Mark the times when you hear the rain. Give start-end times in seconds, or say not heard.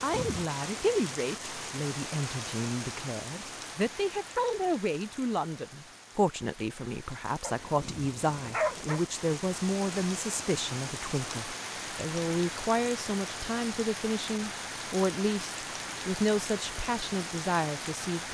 0.0-18.3.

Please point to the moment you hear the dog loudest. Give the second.
9 s.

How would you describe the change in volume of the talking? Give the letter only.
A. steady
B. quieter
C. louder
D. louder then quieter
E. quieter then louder
A.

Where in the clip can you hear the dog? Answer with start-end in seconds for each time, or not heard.
7.4-9.0.